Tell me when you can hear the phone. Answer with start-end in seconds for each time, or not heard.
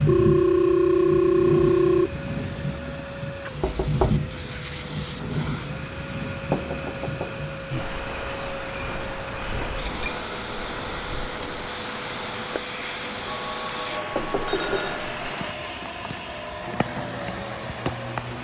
0.1-2.1, 8.8-10.2, 13.2-15.1.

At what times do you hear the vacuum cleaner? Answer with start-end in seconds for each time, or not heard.
0.0-18.4.